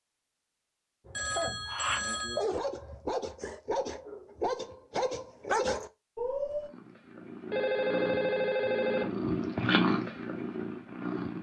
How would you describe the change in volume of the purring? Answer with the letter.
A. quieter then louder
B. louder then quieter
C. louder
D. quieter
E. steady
B.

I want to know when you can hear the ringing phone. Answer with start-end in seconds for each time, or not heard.
1.1-2.5, 7.5-9.1.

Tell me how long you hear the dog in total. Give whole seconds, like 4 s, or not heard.
6 s.